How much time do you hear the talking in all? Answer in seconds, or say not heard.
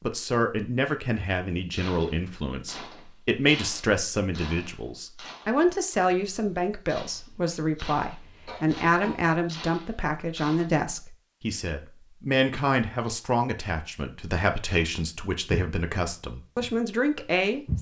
18 s.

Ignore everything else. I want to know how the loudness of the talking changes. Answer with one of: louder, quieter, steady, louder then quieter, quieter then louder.
steady.